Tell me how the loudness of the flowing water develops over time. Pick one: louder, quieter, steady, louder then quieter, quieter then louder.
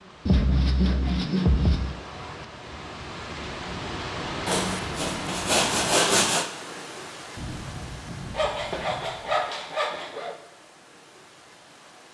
louder then quieter.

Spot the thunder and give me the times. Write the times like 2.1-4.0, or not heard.
7.3-9.4.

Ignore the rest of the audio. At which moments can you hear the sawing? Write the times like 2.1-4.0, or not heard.
0.2-1.9, 4.5-6.5, 8.3-10.3.